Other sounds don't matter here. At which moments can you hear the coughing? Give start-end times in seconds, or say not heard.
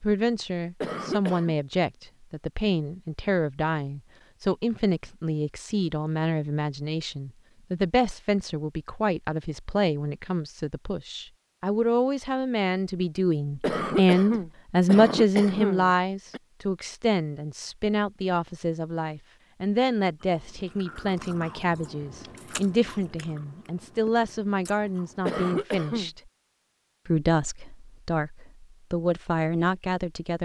0.8-1.6, 13.6-16.4, 25.2-26.1.